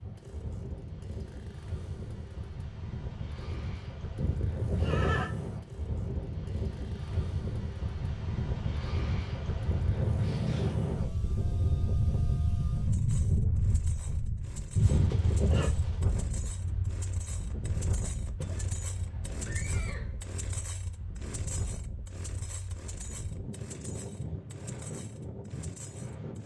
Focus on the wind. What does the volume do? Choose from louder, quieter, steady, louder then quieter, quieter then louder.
louder then quieter.